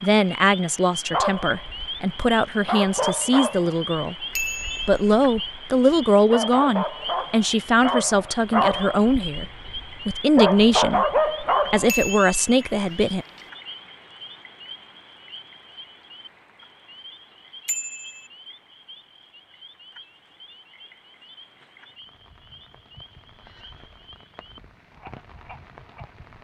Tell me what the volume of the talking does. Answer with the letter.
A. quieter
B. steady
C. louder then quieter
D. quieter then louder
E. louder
B.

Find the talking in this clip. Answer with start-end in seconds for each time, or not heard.
0.0-4.2, 4.8-13.2.